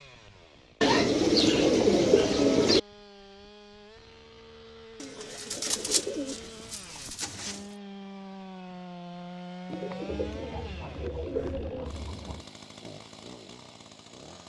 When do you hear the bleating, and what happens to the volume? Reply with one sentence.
You can't hear the bleating here.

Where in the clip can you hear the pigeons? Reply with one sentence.
You can hear the pigeons from 0.8 to 2.8 s, from 5.0 to 7.6 s and from 9.7 to 12.4 s.